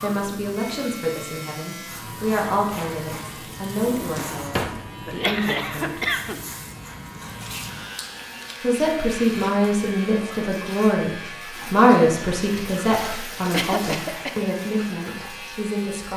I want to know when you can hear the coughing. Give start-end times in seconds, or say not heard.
5.0-6.4, 13.5-14.5.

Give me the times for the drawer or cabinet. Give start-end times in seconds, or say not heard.
3.8-4.8.